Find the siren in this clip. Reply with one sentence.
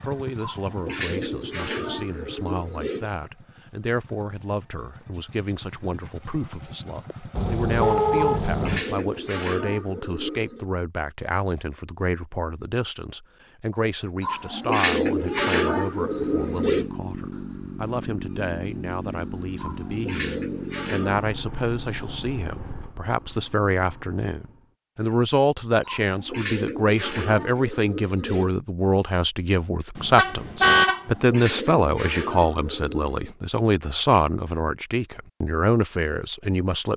The siren can't be heard in this clip.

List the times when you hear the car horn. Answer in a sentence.
The car horn can be heard from 7.3 to 8.8 s, from 15.2 to 15.8 s and from 29.9 to 31.1 s.